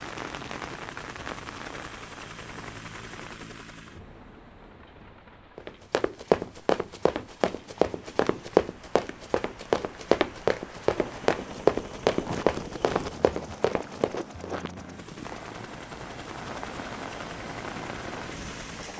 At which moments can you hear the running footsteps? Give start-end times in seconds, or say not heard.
5.5-14.4.